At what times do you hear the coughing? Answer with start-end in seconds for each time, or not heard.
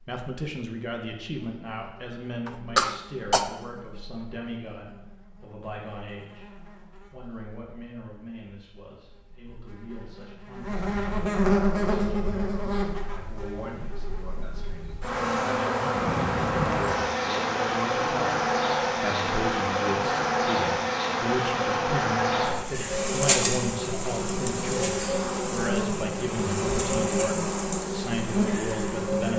2.5-3.5.